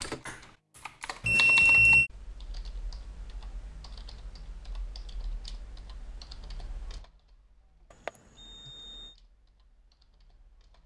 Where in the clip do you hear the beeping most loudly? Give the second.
2 s.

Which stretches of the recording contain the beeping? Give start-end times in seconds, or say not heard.
1.2-2.1, 8.1-9.1.